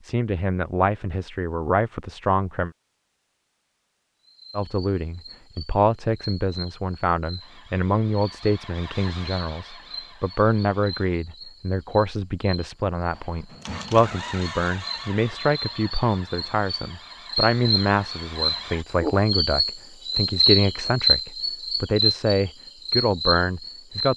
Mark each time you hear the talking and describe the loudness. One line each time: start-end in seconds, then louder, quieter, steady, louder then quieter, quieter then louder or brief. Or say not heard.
0.0-2.7 brief
4.5-24.1 steady.